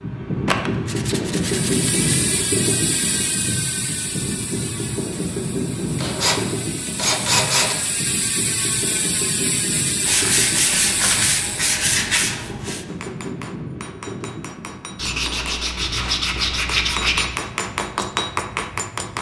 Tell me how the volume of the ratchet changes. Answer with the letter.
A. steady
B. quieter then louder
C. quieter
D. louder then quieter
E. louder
B.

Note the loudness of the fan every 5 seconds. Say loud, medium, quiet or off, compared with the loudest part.
loud, loud, medium, quiet.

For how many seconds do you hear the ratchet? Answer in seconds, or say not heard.
10 s.